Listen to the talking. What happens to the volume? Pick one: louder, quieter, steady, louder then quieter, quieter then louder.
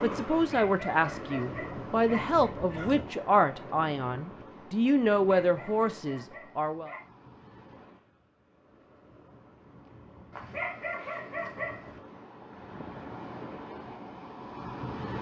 steady.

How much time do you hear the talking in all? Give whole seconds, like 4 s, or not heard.
7 s.